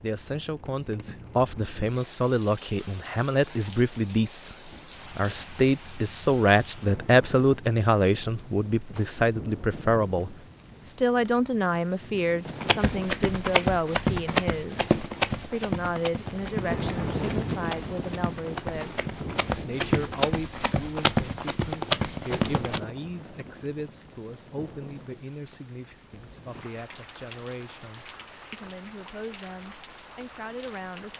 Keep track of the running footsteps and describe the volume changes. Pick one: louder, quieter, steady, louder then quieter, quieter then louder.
quieter then louder.